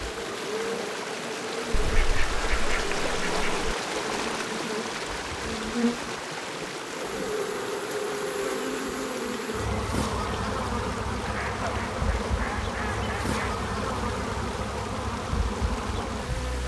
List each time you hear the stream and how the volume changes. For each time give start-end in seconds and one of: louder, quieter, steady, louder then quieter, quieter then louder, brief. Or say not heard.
0.0-16.6 quieter.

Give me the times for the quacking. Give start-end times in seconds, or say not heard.
1.8-3.6, 11.2-13.6.